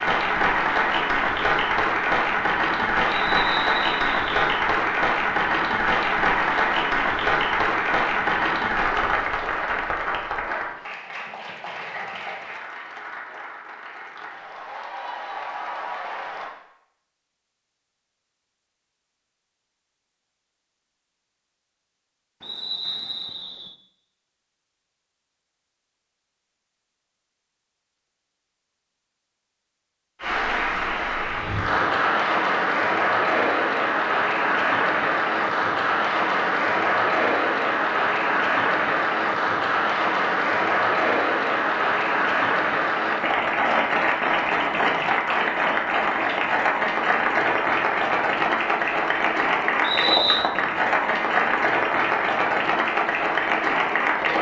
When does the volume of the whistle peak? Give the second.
50 s.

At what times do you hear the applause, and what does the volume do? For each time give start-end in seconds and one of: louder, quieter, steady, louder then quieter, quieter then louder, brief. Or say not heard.
0.0-16.5 quieter
30.2-54.3 steady.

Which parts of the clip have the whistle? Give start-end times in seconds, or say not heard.
3.0-4.3, 22.4-23.8, 49.8-50.5.